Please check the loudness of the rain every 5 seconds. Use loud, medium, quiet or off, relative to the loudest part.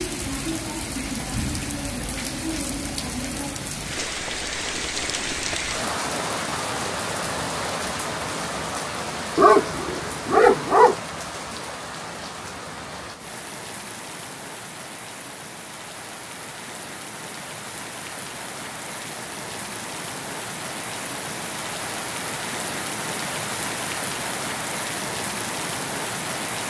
loud, loud, medium, medium, loud, loud.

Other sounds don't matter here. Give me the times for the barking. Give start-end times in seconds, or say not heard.
9.3-10.9.